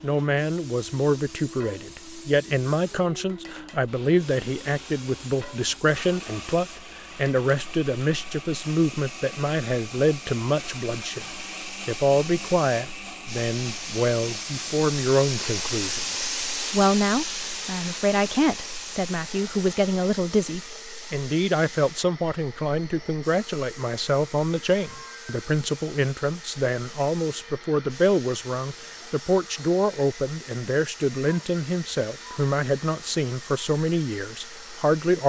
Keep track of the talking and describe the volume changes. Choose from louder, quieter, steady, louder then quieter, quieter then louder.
steady.